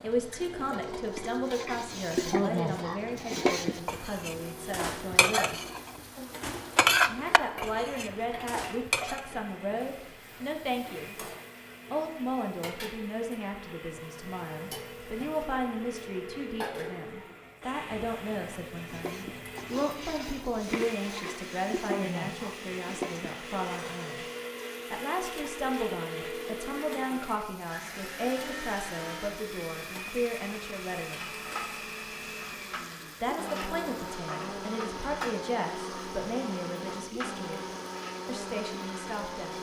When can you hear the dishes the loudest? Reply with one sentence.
The loudest moment of the dishes is at 7 seconds.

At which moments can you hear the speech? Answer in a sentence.
You can hear the speech from 0.0 to 5.6 s, from 7.0 to 11.2 s, from 11.9 to 24.2 s, from 24.9 to 31.3 s, from 33.2 to 37.6 s and from 38.2 to 39.5 s.